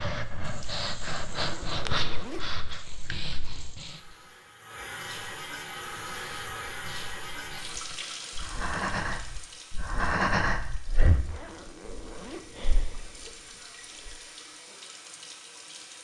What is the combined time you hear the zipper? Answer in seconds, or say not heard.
4 s.